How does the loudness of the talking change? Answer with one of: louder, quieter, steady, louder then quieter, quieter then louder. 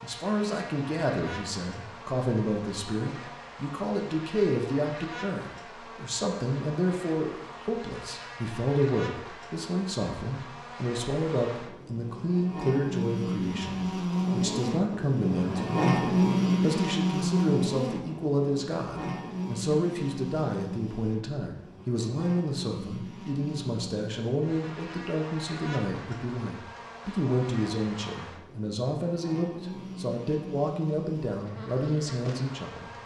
steady.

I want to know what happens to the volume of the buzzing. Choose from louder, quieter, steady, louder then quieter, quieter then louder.
louder then quieter.